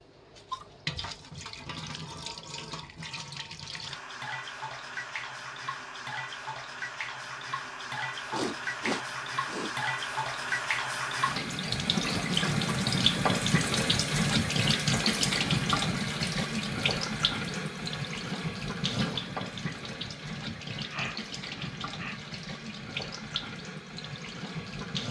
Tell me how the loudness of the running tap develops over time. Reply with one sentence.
The volume of the running tap goes up, then down.